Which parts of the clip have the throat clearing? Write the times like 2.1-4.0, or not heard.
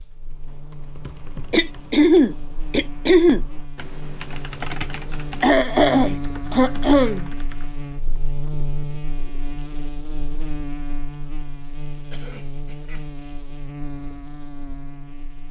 1.5-3.4, 5.4-7.3, 12.1-13.1.